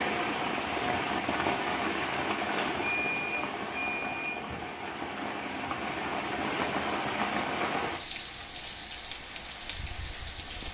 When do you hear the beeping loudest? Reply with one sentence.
The loudest moment of the beeping is at 3 seconds.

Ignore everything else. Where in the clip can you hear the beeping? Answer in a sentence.
The beeping can be heard from 2.5 to 4.6 s.